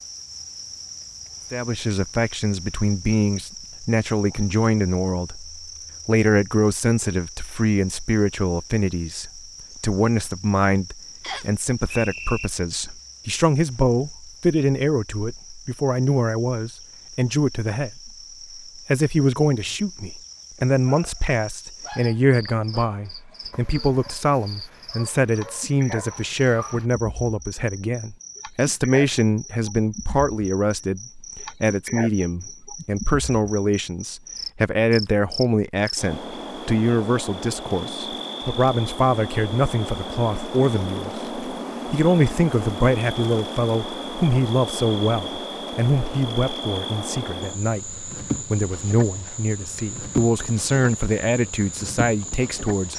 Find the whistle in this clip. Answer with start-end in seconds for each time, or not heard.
11.2-12.5.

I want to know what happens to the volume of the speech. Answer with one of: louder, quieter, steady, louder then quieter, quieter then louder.
steady.